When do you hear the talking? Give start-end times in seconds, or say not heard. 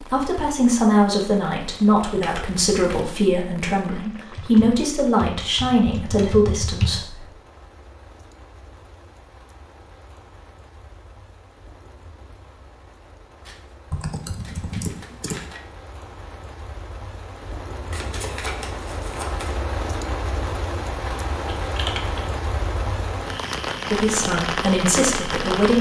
0.0-7.2, 23.9-25.7.